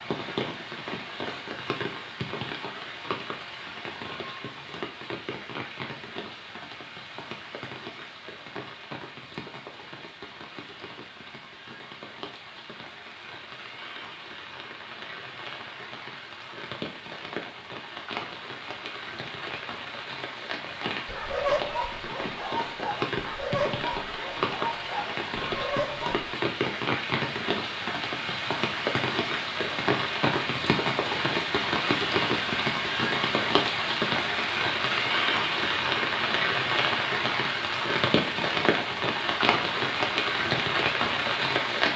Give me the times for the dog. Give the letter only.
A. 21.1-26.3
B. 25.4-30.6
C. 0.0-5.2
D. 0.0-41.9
A.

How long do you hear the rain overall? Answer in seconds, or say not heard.
42 s.